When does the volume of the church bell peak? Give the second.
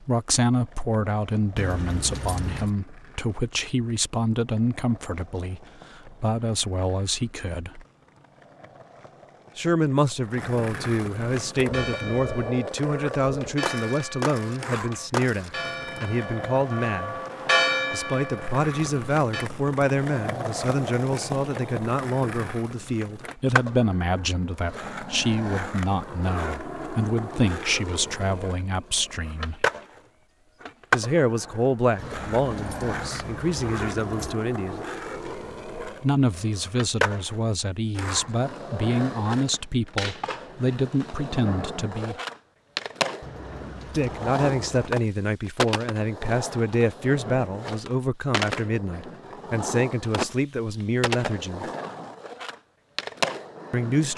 18 s.